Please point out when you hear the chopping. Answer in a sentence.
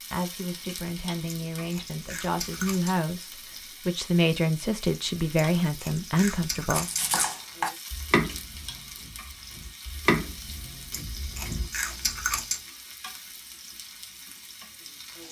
You can hear the chopping from 6.8 to 11.7 s.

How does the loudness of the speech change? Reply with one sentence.
The volume of the speech goes up.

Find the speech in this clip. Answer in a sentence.
You can hear the speech from 0.1 to 6.9 s.